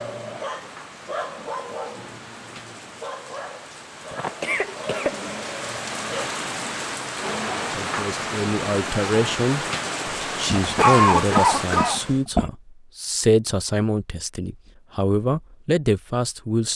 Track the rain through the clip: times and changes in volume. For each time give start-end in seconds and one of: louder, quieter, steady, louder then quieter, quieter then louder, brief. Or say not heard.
0.0-12.2 louder.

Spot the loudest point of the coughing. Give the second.
11 s.